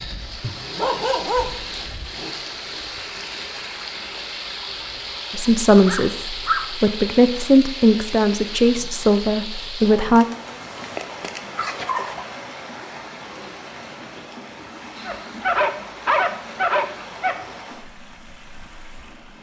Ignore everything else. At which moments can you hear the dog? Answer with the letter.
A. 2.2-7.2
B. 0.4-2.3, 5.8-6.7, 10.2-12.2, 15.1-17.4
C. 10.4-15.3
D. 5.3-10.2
B.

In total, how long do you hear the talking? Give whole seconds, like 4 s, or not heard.
5 s.